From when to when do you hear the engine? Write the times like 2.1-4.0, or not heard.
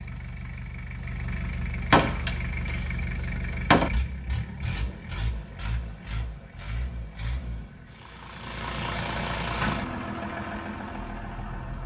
0.0-11.8.